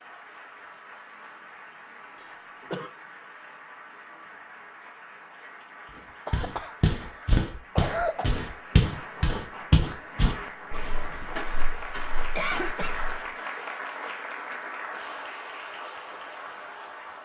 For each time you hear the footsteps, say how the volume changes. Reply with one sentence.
The footsteps can be heard from 6.3 to 13.2 s, getting quieter.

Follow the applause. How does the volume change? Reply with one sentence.
The volume of the applause goes up.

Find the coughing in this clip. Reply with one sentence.
You can hear the coughing from 2.2 to 2.9 s, from 6.2 to 8.2 s and from 12.2 to 12.9 s.